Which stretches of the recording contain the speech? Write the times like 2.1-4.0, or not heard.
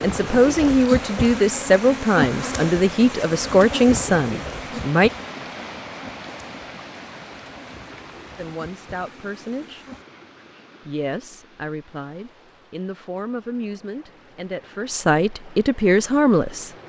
0.0-5.1, 8.3-9.8, 10.8-16.7.